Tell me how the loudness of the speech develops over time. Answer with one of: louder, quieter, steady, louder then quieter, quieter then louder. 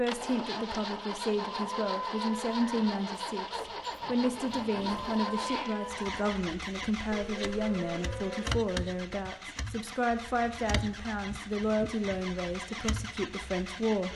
steady.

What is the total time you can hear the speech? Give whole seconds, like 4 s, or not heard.
14 s.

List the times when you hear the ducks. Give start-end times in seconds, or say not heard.
not heard.